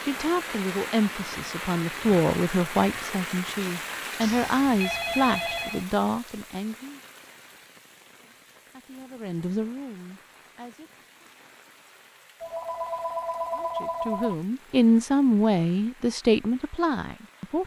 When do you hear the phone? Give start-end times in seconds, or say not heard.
4.2-5.8, 12.4-14.3.